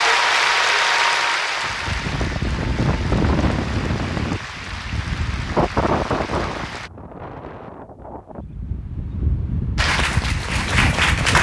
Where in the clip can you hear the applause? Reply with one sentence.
The applause can be heard from 0.0 to 6.9 s and from 9.8 to 11.3 s.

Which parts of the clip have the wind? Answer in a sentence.
The wind can be heard from 1.6 to 11.3 s.